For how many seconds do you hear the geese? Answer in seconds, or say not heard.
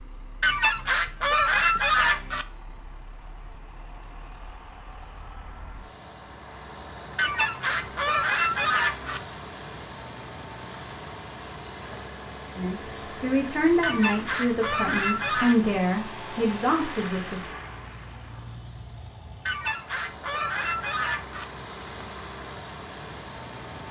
8 s.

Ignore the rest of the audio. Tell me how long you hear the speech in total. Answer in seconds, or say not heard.
5 s.